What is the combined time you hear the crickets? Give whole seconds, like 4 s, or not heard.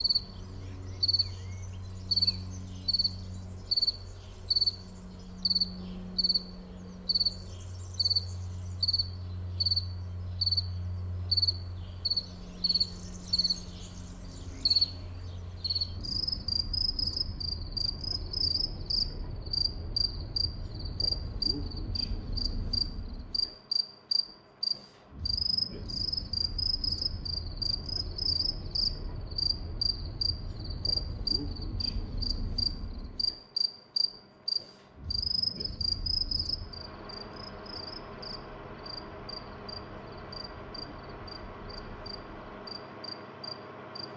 44 s.